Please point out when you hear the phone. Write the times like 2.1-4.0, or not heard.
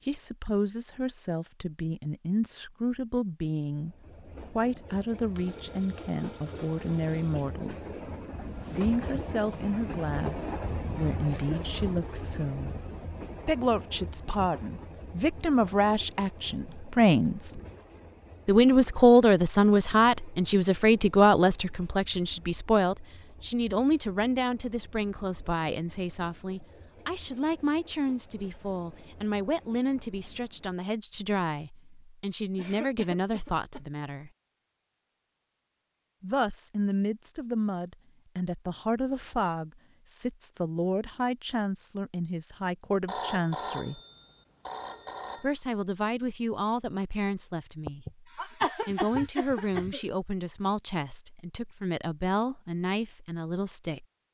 5.3-7.5, 43.0-45.5.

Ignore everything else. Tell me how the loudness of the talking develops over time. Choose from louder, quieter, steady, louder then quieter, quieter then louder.
louder then quieter.